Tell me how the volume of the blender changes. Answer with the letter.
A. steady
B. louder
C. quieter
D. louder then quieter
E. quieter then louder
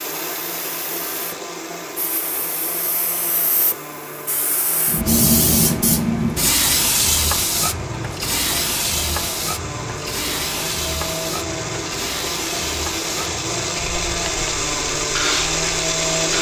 B.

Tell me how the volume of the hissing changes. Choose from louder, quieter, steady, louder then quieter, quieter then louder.
louder then quieter.